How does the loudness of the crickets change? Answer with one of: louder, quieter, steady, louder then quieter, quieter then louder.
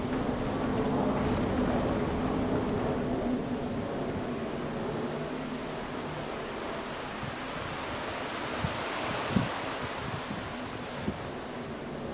louder.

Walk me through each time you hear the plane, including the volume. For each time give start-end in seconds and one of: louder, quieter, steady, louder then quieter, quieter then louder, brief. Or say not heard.
0.0-12.0 quieter.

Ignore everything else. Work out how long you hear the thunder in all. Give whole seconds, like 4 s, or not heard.
3 s.